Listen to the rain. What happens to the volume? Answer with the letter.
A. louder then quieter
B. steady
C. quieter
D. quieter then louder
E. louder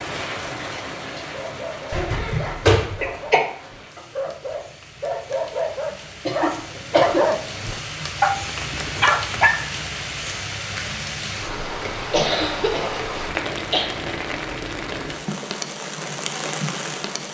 D.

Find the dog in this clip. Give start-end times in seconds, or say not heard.
1.2-9.7.